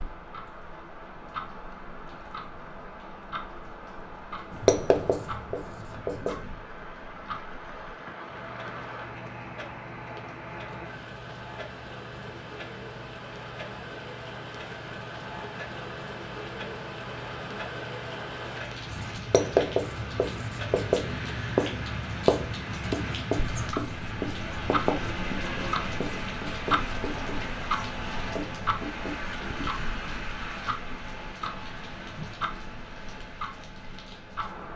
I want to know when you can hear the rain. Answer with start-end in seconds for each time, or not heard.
0.0-34.7.